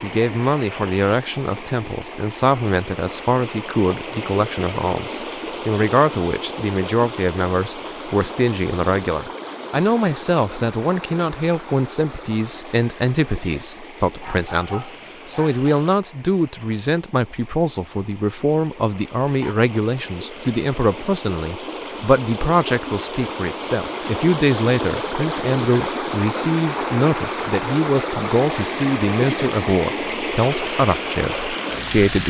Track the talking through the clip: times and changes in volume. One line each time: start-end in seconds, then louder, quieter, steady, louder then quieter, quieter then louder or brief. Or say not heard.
0.0-32.2 steady.